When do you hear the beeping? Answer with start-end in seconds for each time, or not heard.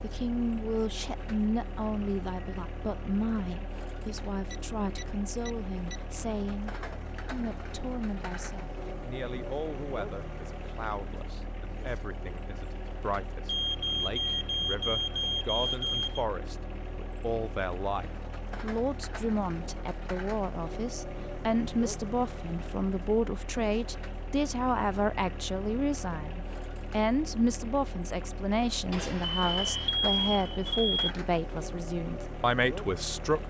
4.5-6.0, 13.4-16.2, 28.9-31.1.